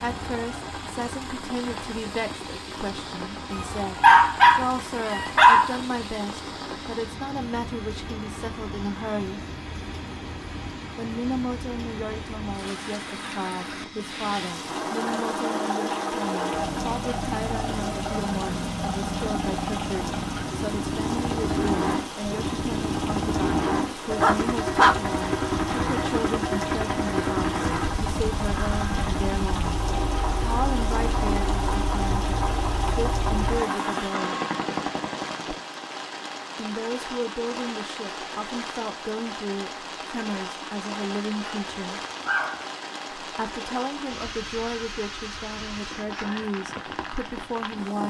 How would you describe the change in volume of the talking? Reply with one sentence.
The loudness of the talking stays about the same.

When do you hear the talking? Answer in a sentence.
The talking can be heard from 0.0 to 9.4 s, from 10.9 to 29.8 s, from 30.4 to 34.4 s, from 36.5 to 42.0 s and from 43.2 to 48.0 s.